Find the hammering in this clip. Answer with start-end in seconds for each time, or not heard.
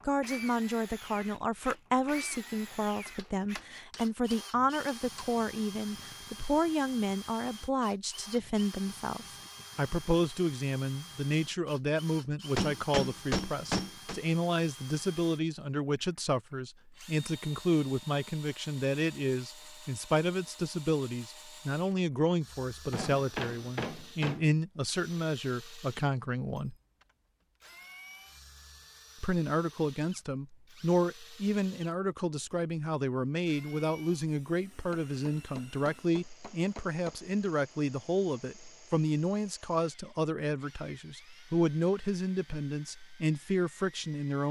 3.1-5.3, 12.6-14.2, 22.9-24.5, 34.9-37.1.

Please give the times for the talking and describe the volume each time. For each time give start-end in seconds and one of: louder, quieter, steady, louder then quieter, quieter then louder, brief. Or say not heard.
0.1-26.8 steady
29.2-44.4 steady.